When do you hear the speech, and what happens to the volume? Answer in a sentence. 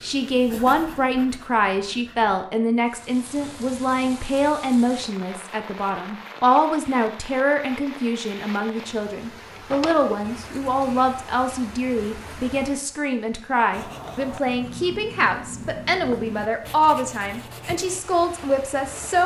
You can hear the speech from 0.0 to 19.2 s, at a steady volume.